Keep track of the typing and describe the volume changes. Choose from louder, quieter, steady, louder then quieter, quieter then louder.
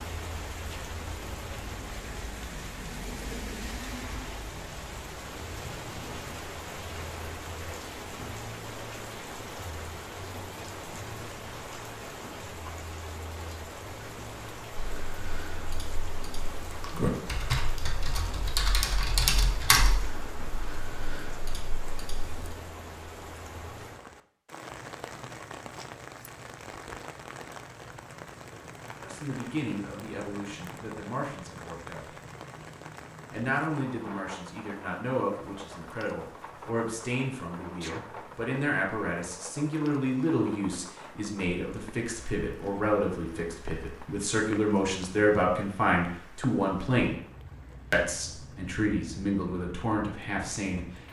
louder then quieter.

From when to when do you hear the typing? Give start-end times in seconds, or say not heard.
14.8-22.6.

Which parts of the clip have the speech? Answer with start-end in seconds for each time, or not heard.
29.0-32.0, 33.3-47.1, 47.9-50.9.